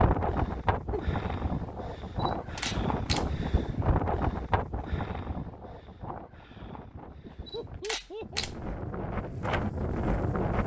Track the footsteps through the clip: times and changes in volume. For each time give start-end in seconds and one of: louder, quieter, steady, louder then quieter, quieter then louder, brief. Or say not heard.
not heard.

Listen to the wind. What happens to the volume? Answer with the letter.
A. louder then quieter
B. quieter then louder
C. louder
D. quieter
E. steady
B.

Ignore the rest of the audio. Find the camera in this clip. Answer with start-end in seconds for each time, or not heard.
2.2-3.5, 7.5-8.8.